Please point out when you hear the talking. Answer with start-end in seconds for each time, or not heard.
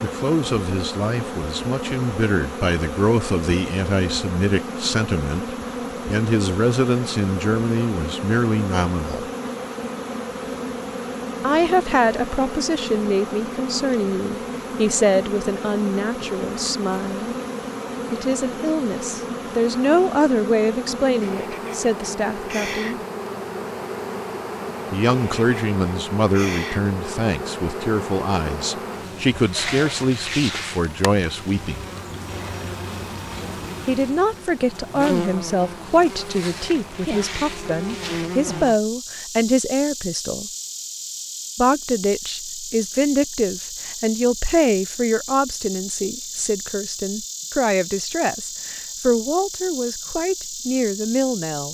0.0-9.2, 11.4-17.4, 18.1-23.0, 24.9-31.9, 33.9-40.5, 41.5-51.6.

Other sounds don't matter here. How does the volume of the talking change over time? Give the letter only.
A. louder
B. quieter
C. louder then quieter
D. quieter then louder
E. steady
E.